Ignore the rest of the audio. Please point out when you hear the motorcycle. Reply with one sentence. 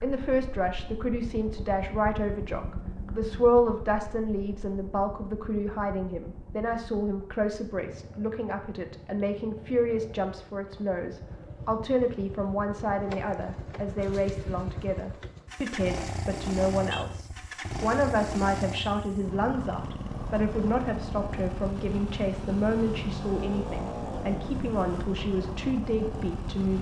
The motorcycle can be heard from 0.0 to 26.7 s.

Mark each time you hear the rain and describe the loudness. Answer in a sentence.
The rain can't be heard in this clip.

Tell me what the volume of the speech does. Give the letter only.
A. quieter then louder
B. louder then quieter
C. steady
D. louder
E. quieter
C.